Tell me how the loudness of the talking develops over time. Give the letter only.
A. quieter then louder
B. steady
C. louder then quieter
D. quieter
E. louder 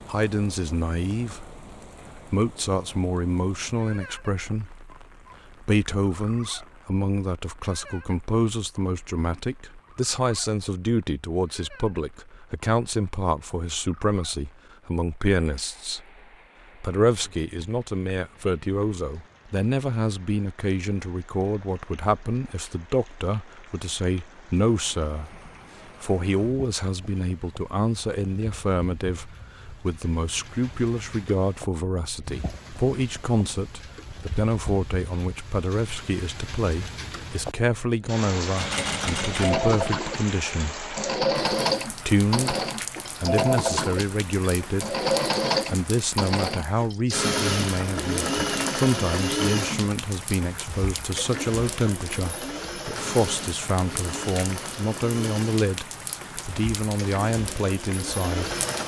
B.